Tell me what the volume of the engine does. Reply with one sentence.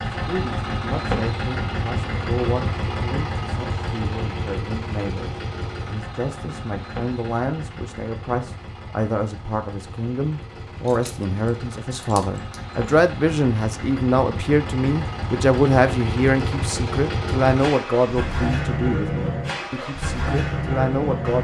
The loudness of the engine goes down, then up.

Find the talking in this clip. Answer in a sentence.
You can hear the talking from 0.2 to 21.3 s.